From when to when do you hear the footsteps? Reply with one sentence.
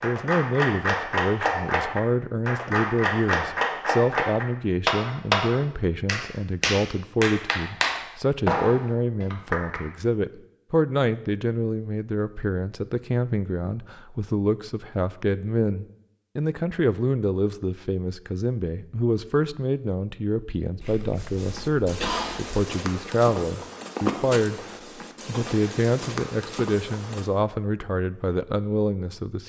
You can hear the footsteps from 21.4 to 27.3 s.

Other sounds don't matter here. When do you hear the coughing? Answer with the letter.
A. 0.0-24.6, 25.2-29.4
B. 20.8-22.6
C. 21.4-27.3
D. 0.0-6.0
B.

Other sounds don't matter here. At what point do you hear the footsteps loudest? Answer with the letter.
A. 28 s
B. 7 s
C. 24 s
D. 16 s
C.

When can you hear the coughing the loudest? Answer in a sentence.
The volume of the coughing peaks at 22 seconds.